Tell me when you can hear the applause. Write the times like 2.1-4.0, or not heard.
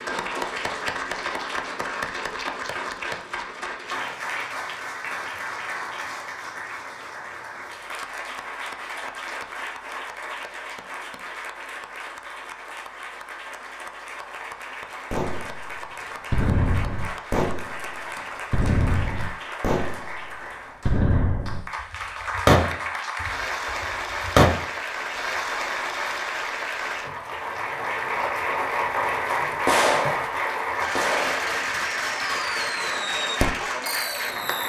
0.0-34.6.